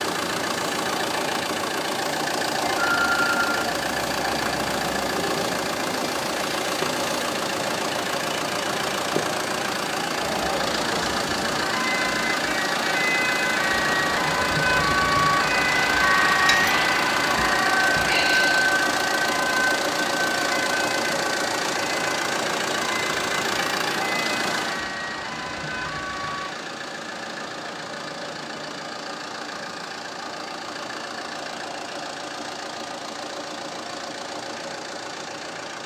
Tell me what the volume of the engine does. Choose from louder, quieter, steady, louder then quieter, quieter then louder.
quieter.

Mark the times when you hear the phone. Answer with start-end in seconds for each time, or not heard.
2.6-3.6.